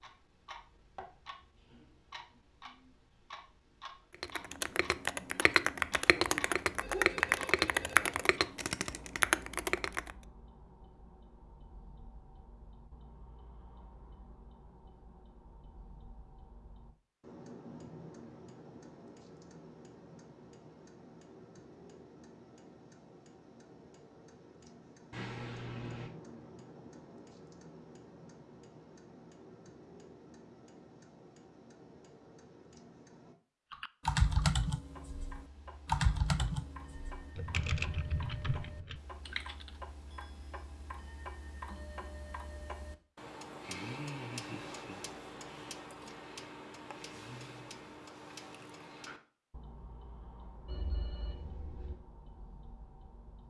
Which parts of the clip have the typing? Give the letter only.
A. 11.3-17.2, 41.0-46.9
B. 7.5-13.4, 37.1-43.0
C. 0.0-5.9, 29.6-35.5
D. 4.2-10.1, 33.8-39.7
D.